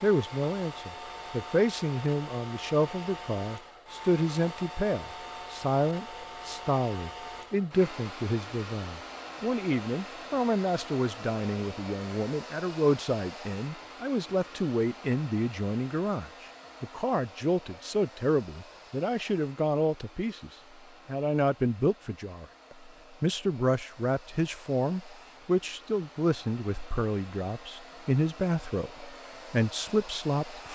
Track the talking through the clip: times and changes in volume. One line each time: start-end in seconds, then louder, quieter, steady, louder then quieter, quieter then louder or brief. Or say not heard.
0.0-30.7 steady.